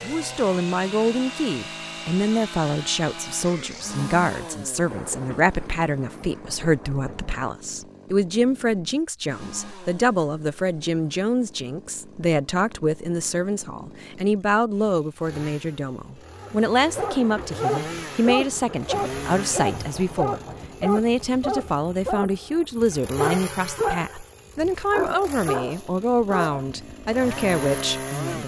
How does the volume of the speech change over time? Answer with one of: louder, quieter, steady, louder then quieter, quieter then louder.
steady.